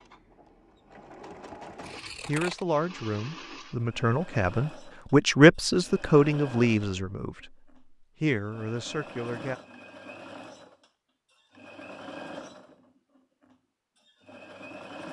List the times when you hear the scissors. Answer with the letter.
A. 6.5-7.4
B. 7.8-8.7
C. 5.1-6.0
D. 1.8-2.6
D.